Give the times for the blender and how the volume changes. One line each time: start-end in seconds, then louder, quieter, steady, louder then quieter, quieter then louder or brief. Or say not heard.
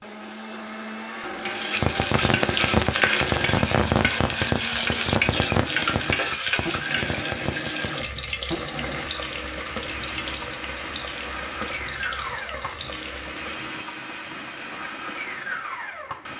0.0-16.3 steady.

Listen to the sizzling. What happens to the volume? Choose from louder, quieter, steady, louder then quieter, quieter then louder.
quieter.